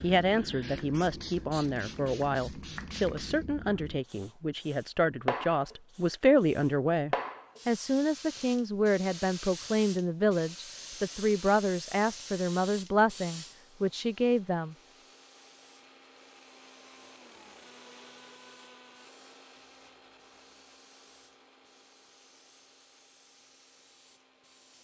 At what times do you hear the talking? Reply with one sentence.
You can hear the talking from 0.0 to 14.8 s.